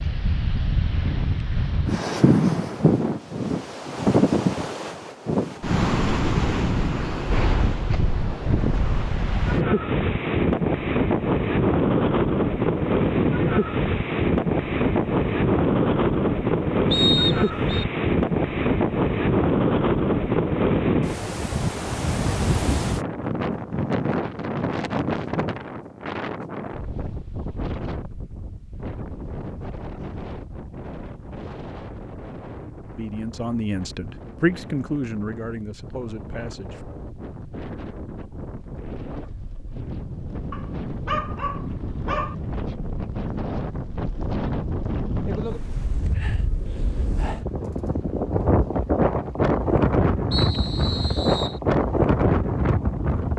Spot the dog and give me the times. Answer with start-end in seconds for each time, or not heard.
40.5-42.4.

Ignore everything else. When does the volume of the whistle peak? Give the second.
17 s.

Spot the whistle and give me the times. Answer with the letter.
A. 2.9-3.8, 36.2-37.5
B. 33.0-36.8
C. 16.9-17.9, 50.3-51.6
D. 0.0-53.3
C.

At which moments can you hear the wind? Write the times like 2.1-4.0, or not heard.
0.0-53.3.